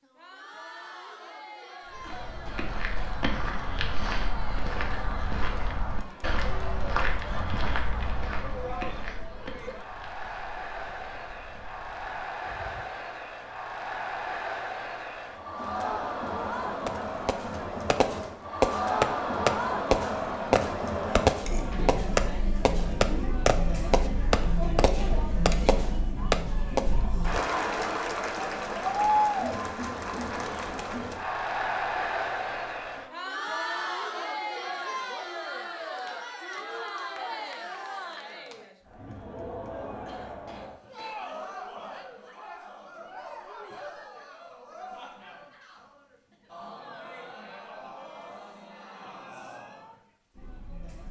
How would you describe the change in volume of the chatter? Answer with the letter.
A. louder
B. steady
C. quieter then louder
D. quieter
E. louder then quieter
E.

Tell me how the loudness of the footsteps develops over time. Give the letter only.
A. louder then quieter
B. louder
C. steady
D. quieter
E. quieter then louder
D.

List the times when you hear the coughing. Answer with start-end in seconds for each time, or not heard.
2.0-3.2, 40.0-41.2.